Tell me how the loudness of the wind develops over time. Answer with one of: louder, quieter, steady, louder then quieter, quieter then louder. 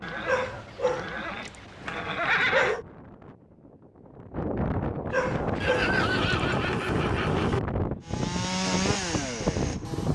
louder.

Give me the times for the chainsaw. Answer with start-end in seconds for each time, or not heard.
8.1-10.0.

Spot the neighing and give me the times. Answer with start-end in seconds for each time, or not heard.
0.0-2.8, 5.6-7.6.